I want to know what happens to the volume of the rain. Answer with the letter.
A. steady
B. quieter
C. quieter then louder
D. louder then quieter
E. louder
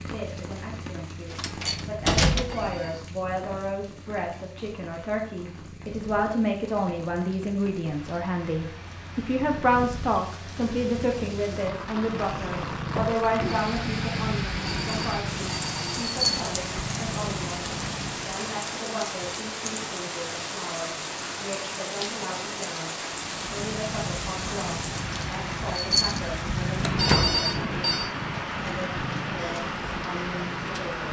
E.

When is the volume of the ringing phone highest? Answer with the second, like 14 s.
27 s.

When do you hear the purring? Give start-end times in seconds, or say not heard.
0.0-18.4, 23.1-30.9.